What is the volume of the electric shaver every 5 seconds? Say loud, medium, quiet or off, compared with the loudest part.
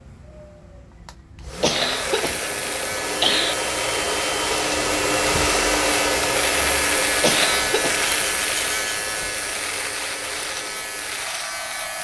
medium, loud, medium.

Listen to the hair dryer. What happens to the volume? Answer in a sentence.
The loudness of the hair dryer goes up, then down.